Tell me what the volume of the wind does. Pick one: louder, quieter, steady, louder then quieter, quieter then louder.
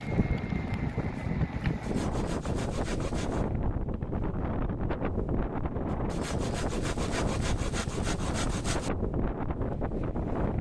steady.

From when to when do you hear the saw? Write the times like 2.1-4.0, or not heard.
1.8-3.5, 6.1-8.9.